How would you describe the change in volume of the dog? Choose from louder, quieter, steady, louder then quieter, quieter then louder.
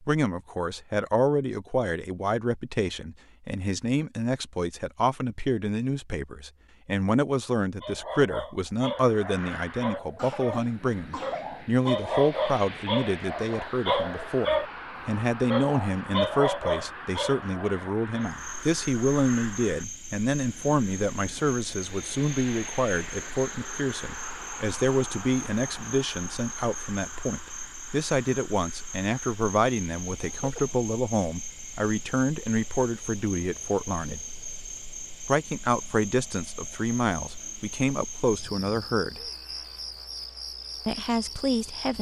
louder.